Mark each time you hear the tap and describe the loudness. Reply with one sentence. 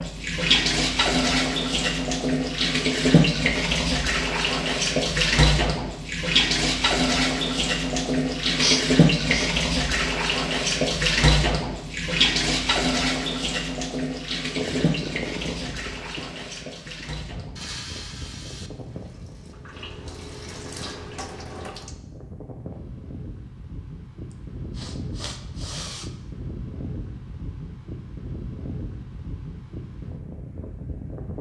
The tap can be heard from 0.0 to 21.9 s, getting quieter.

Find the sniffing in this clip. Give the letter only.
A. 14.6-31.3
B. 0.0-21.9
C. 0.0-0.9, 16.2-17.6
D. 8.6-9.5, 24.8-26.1
D.